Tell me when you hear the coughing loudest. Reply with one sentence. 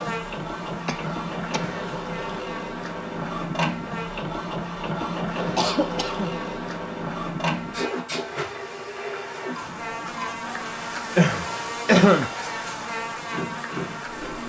The volume of the coughing peaks at 12 seconds.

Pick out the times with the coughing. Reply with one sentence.
The coughing can be heard from 0.8 to 2.2 s, from 5.5 to 6.3 s and from 11.2 to 12.3 s.